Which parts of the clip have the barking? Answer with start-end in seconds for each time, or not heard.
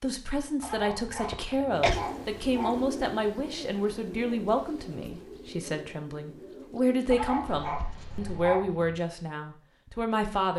0.6-2.9, 7.1-9.0.